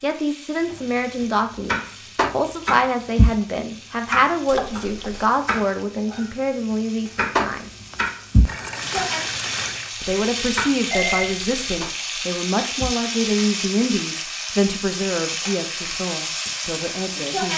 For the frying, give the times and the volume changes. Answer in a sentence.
You can hear the frying from 0.0 to 17.5 s, getting louder.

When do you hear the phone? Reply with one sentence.
You can hear the phone from 4.5 to 5.2 s and from 10.9 to 11.8 s.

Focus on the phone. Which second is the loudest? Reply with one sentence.
The loudest moment of the phone is at 11 seconds.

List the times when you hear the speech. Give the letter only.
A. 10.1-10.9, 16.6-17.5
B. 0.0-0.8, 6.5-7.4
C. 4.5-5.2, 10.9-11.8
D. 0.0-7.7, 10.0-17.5
D.